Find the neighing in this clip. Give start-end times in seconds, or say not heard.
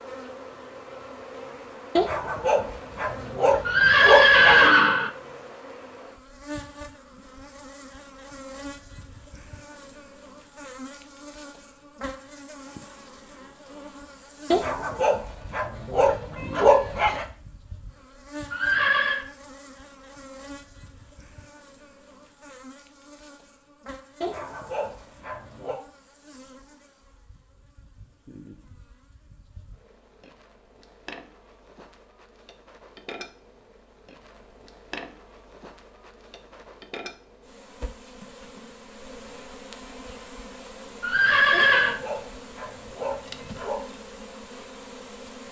3.6-5.1, 18.5-19.2, 41.0-42.0.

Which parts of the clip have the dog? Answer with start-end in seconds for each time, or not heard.
1.9-4.7, 14.5-17.2, 24.2-25.8, 41.5-43.9.